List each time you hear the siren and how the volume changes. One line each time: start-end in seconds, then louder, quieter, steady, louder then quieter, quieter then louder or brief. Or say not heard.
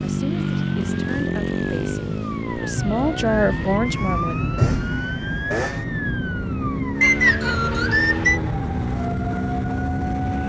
0.0-10.4 louder then quieter.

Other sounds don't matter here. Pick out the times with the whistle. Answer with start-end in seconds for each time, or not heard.
7.0-8.4.